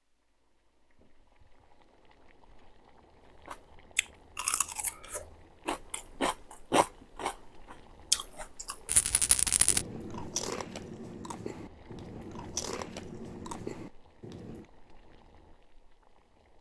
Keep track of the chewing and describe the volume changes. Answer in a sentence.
The loudness of the chewing goes up, then down.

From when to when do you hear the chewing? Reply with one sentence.
The chewing can be heard from 3.5 to 14.7 s.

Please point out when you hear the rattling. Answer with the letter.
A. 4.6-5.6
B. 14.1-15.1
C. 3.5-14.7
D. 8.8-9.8
D.